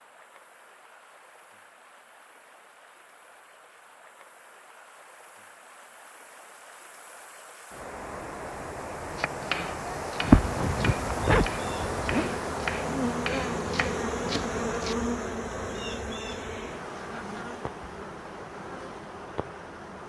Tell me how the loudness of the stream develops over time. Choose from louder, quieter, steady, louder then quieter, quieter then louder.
louder then quieter.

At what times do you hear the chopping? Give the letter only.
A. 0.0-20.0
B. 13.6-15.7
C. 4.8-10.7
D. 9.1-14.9
D.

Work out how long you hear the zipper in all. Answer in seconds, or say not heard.
2 s.